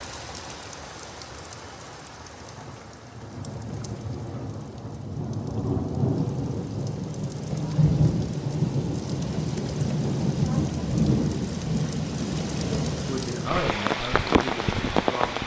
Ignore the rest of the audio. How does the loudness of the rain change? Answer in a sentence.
The loudness of the rain goes up.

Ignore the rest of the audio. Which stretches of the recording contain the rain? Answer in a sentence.
You can hear the rain from 0.0 to 15.4 s.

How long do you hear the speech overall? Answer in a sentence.
You can hear the speech for 2 seconds altogether.